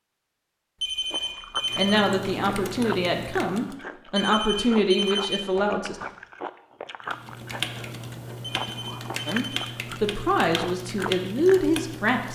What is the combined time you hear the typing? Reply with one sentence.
You can hear the typing for 7 seconds altogether.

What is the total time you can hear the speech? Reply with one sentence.
You can hear the speech for 7 seconds altogether.